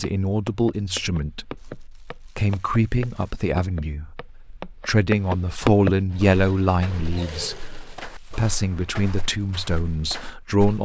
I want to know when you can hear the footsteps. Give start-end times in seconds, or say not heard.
0.0-10.7.